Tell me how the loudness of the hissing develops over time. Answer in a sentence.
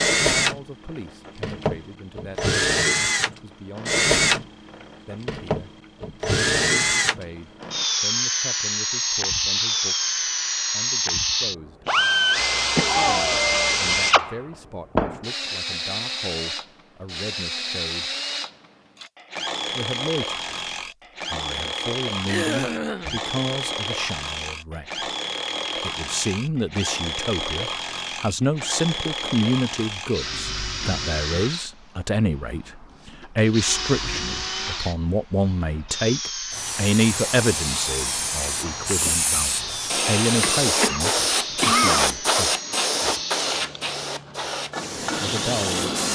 The loudness of the hissing goes up, then down.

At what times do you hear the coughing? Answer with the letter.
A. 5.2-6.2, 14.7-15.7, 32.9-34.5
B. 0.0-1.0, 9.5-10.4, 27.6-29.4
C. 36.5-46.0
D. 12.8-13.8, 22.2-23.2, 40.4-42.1
D.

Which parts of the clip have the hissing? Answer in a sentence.
You can hear the hissing from 36.5 to 46.0 s.